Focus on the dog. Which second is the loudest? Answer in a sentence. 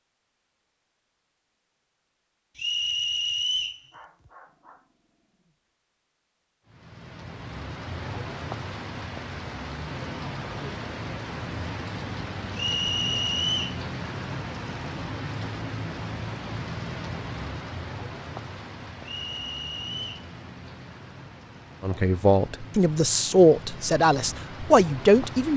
The volume of the dog peaks at 4 seconds.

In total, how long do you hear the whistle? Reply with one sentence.
You can hear the whistle for 4 seconds altogether.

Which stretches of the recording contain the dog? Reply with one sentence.
You can hear the dog from 3.9 to 5.5 s.